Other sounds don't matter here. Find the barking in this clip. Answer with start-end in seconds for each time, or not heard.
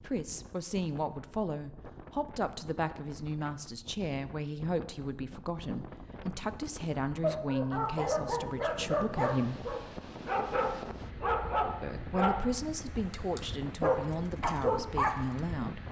7.2-15.4.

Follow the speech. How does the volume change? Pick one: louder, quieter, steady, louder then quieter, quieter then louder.
steady.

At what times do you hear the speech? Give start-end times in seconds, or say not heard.
0.0-9.7, 11.8-15.8.